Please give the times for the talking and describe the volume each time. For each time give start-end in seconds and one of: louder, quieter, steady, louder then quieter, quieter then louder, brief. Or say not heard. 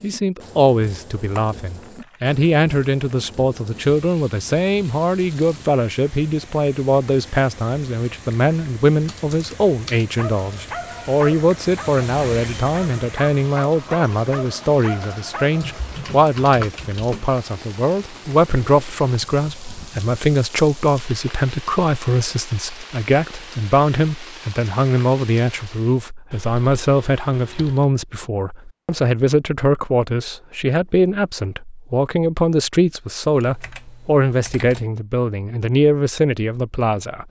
0.0-37.2 steady.